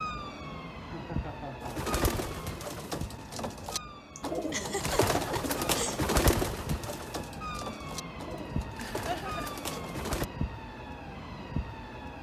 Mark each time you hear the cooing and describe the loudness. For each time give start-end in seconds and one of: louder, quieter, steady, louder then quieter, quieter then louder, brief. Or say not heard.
1.6-10.2 louder then quieter.